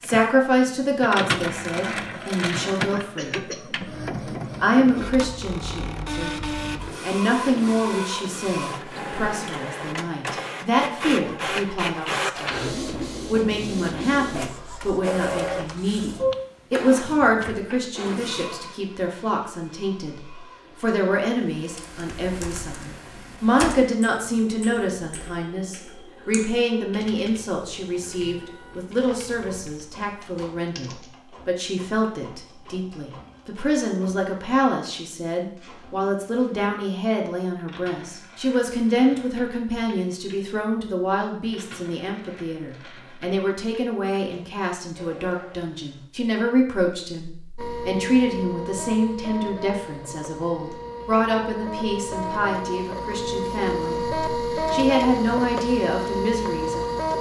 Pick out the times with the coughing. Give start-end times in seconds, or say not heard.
2.7-3.6.